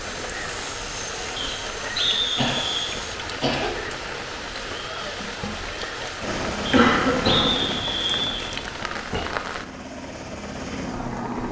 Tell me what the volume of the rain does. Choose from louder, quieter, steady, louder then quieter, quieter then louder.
steady.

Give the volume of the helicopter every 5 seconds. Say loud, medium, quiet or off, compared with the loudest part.
medium, loud, loud.